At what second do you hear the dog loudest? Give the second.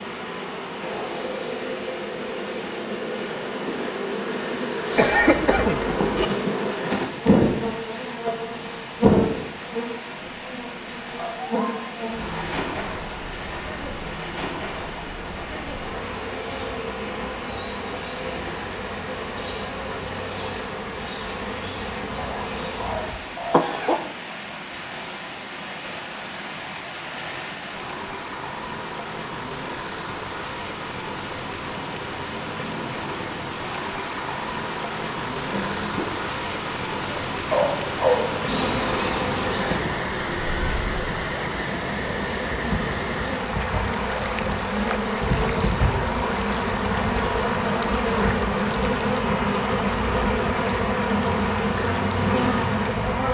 38 s.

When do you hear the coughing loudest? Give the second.
5 s.